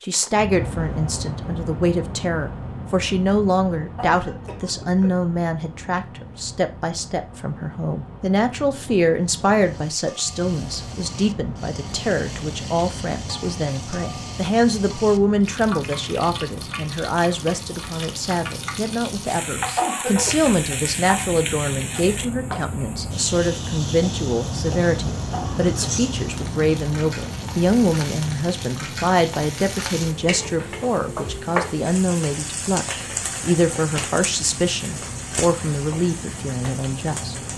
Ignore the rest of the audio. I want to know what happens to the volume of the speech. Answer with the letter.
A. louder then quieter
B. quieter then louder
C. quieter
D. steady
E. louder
D.